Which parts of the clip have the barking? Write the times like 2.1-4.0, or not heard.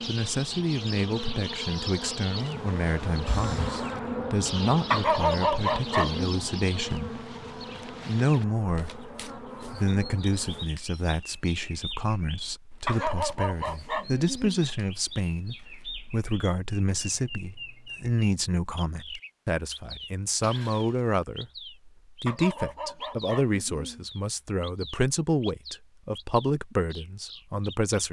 4.9-6.2, 12.8-14.7, 22.2-24.1.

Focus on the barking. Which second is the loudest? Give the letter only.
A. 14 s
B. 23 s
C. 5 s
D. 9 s
C.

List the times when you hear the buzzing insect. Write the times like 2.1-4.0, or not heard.
0.0-10.7.